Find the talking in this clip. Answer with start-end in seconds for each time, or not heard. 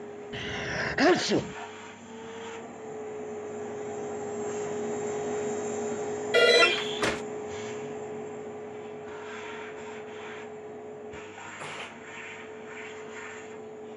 not heard.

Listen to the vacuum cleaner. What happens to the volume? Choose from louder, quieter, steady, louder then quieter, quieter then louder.
louder then quieter.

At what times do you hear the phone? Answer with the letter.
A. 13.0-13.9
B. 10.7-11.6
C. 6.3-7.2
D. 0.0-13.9
C.